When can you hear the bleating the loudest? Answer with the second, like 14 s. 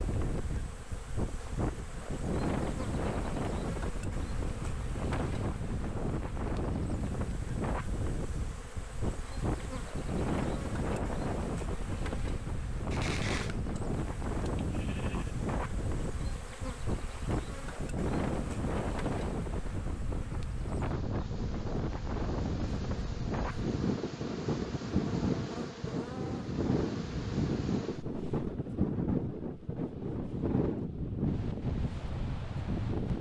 13 s.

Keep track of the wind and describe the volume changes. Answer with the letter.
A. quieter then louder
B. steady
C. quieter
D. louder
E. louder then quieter
B.